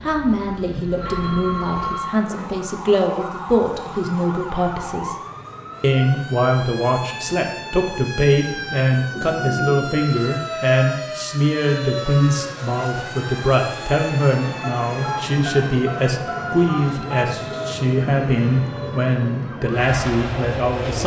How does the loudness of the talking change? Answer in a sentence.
The volume of the talking stays about the same.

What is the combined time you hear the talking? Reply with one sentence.
The talking can be heard for 20 seconds in total.